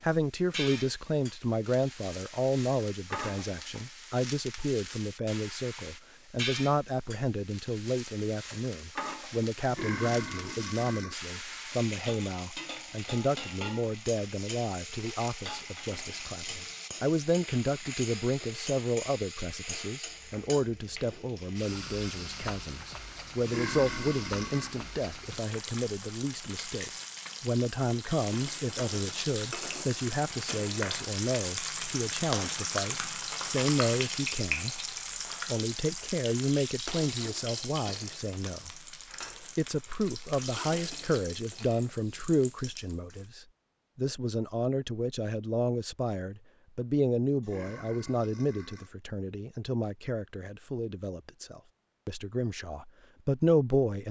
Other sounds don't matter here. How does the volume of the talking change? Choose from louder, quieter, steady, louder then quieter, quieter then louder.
steady.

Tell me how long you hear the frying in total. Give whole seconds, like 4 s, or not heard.
43 s.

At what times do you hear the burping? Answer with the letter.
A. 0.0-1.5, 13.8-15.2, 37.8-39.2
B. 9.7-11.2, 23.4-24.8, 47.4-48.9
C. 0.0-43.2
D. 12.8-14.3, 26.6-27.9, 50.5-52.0
B.